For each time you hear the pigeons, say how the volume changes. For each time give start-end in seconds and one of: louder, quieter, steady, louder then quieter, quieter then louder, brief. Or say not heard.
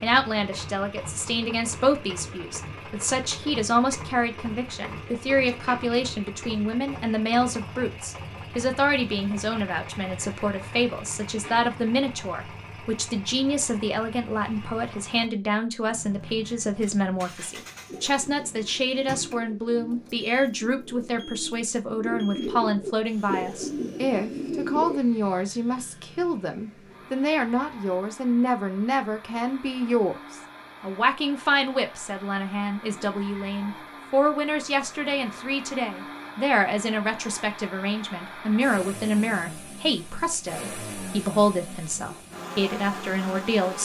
17.6-25.0 louder.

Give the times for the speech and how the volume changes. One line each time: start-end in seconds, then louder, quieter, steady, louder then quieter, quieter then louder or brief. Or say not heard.
0.0-43.8 steady.